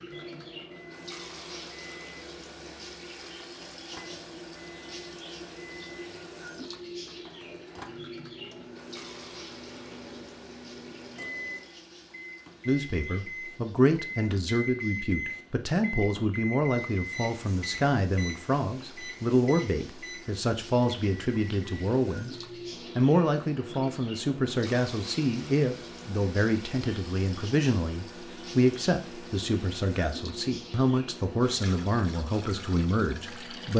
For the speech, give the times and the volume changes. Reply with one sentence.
The speech can be heard from 12.7 to 22.4 s, at a steady volume; and from 22.9 to 33.7 s, at a steady volume.